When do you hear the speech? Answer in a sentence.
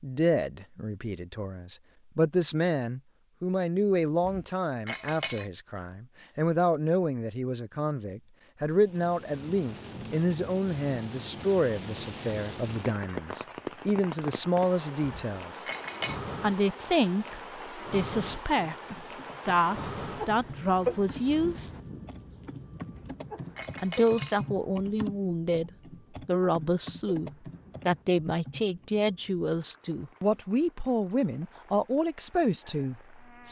The speech can be heard from 0.0 to 15.7 s, from 16.4 to 21.7 s and from 23.8 to 33.4 s.